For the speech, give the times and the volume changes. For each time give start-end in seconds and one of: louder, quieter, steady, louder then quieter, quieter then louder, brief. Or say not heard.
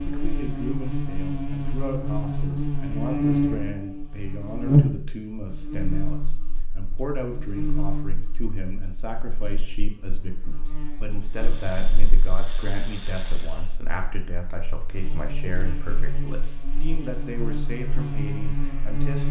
0.0-19.2 steady.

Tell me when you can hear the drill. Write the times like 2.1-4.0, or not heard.
11.2-13.8.